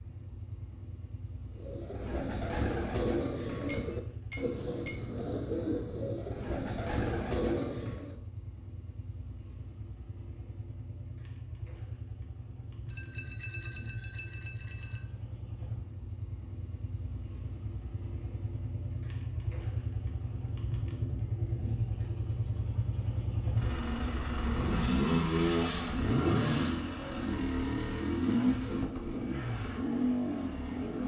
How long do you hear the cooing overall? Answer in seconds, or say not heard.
7 s.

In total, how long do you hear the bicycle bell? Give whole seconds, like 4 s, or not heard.
6 s.